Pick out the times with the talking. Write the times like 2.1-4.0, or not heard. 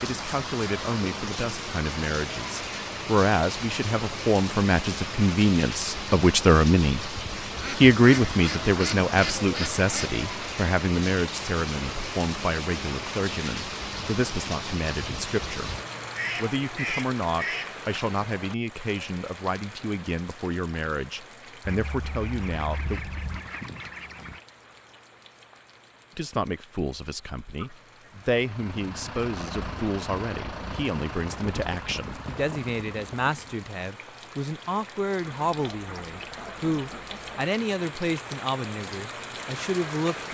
0.0-15.8, 16.4-23.0, 26.1-40.2.